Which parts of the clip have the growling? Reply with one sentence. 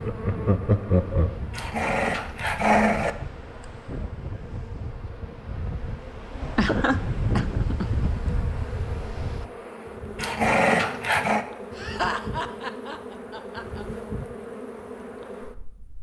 The growling can be heard from 1.5 to 3.1 s and from 10.2 to 11.4 s.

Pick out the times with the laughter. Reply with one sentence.
The laughter can be heard from 0.0 to 1.4 s, from 6.5 to 8.0 s and from 11.8 to 13.8 s.